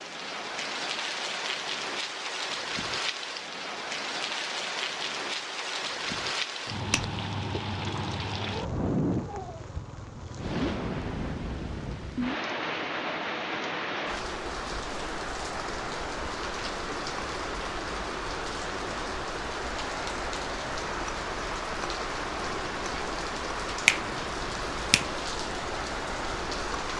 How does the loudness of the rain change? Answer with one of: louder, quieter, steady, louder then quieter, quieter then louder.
steady.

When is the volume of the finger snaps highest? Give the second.
24 s.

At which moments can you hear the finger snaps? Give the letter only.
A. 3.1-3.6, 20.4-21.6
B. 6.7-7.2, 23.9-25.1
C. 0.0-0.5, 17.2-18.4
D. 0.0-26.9
B.